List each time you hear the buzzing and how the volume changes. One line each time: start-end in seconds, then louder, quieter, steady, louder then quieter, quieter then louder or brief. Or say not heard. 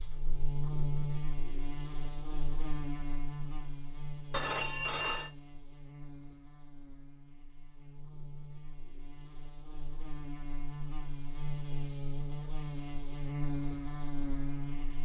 0.0-15.0 quieter then louder.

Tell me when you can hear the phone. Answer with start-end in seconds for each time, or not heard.
4.3-5.3.